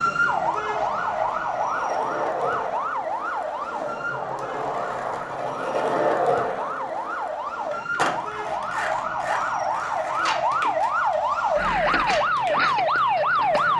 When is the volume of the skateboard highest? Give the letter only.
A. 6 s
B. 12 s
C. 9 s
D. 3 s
A.